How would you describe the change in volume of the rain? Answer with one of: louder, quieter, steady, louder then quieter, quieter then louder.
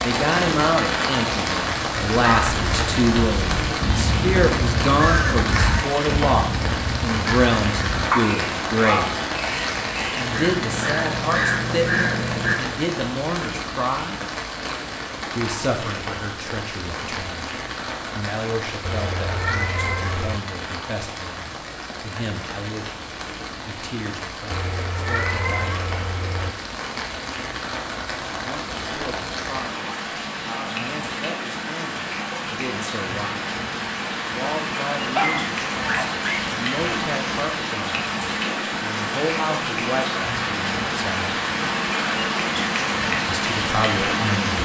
quieter then louder.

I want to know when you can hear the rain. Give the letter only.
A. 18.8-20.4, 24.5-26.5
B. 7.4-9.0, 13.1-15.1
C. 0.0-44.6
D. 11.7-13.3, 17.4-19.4
C.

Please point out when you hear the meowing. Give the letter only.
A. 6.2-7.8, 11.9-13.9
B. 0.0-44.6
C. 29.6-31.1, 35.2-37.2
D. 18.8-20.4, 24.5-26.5
D.